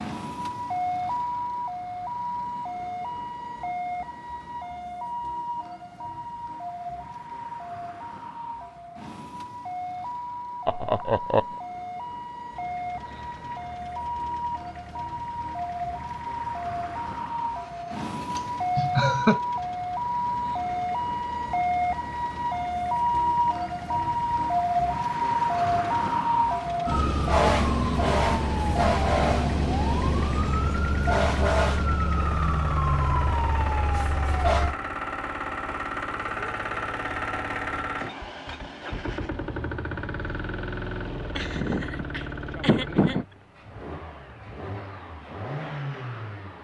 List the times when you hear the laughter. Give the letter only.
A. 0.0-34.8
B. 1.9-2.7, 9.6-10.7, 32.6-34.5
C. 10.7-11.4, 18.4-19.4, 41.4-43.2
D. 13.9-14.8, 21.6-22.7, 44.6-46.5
C.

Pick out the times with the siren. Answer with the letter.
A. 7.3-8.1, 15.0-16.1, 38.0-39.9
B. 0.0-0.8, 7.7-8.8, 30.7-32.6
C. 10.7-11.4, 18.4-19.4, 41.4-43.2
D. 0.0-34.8
D.